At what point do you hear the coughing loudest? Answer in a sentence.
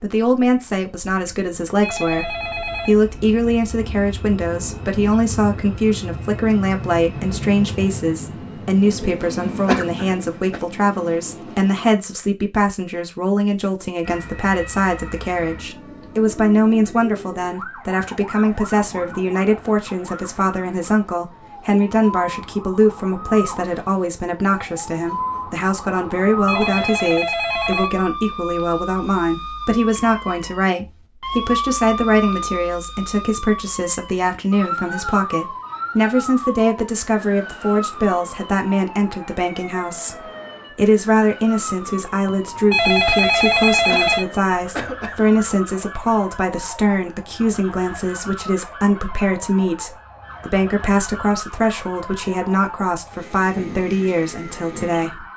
The loudest moment of the coughing is at 10 seconds.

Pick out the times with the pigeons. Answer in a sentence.
The pigeons can't be heard in this clip.